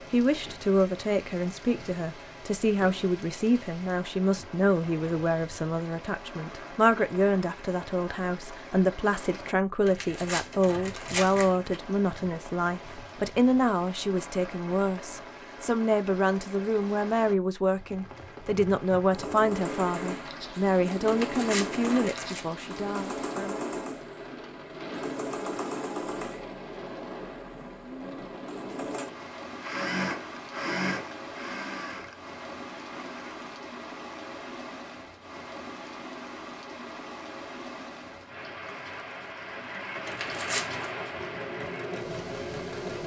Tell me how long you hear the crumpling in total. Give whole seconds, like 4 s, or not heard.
4 s.